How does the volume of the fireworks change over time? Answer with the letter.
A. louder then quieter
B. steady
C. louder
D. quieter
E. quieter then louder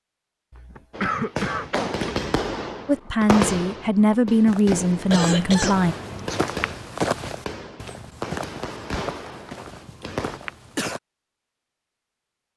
D.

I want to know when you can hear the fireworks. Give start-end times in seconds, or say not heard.
0.9-10.4.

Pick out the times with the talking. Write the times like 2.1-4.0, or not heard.
2.9-6.0.